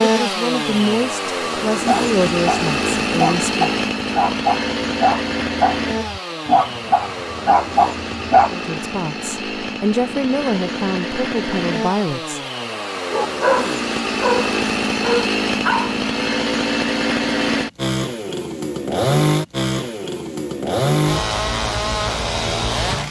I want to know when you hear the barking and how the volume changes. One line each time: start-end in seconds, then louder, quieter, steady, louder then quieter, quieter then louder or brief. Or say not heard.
1.9-8.5 steady
13.1-15.9 brief.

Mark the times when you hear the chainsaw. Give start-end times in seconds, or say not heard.
0.0-23.0.